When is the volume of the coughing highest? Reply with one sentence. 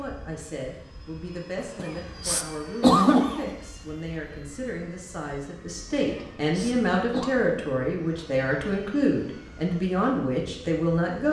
The loudest moment of the coughing is at 3 seconds.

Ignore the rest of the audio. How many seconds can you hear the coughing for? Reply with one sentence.
The coughing can be heard for 3 seconds in total.